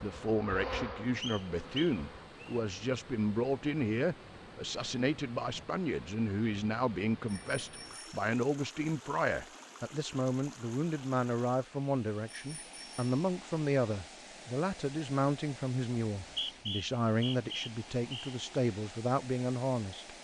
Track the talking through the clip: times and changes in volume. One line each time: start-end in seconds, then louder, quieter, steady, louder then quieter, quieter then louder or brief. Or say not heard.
0.0-20.1 steady.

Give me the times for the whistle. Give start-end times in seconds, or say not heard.
1.2-2.6, 16.2-18.4.